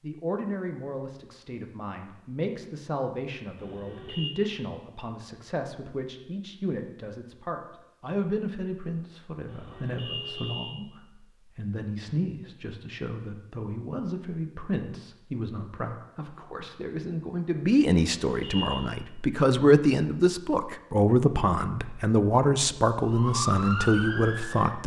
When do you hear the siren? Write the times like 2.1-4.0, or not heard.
23.1-24.8.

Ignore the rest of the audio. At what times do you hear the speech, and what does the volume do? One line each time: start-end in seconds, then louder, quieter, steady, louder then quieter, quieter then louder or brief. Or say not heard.
0.0-24.8 louder.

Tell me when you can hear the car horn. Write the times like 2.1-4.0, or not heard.
3.5-4.3, 9.4-10.8, 17.9-18.9.